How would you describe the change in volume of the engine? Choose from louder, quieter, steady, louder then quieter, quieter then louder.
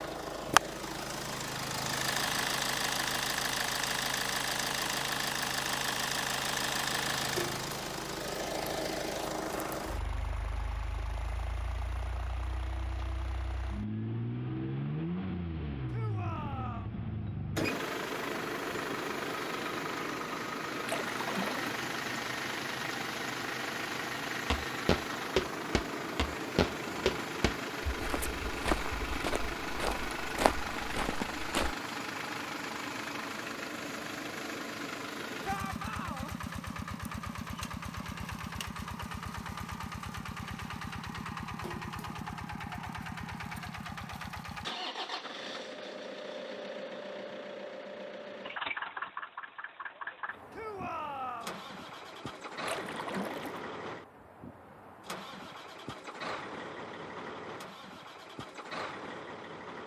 quieter.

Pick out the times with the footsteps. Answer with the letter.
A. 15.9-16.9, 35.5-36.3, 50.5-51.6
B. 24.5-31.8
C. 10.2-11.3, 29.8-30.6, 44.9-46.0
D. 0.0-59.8
B.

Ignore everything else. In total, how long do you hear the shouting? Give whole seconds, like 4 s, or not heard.
3 s.